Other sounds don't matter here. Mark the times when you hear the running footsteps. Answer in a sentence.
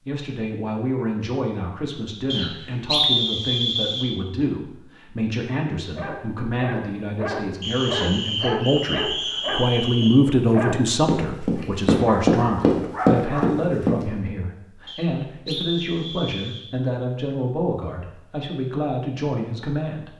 You can hear the running footsteps from 10.2 to 14.3 s.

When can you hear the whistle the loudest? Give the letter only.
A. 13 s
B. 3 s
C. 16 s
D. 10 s
B.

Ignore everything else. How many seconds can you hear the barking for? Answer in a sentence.
The barking can be heard for 8 seconds in total.